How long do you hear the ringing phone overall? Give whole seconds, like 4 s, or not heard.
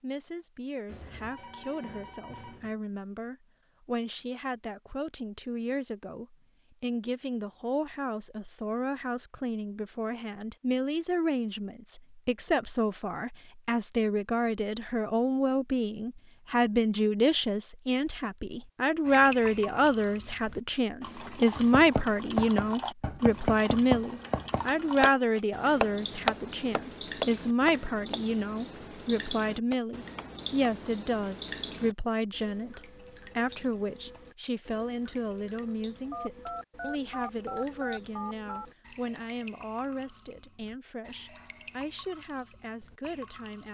5 s.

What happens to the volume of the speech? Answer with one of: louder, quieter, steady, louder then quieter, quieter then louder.
louder then quieter.